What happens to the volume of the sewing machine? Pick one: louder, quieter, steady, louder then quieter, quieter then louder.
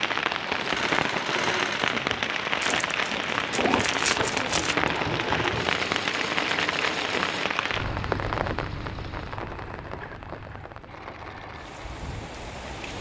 quieter.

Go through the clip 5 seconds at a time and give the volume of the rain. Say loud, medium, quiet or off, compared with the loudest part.
loud, loud, quiet.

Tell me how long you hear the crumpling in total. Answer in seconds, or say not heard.
2 s.